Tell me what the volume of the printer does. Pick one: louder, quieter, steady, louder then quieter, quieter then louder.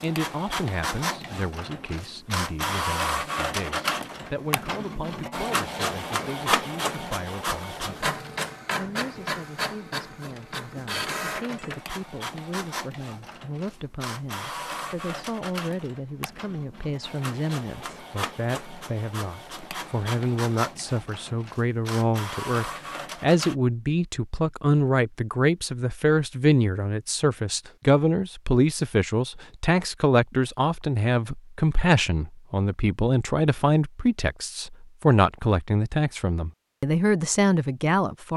quieter.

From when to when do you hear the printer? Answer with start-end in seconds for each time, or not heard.
0.0-23.6.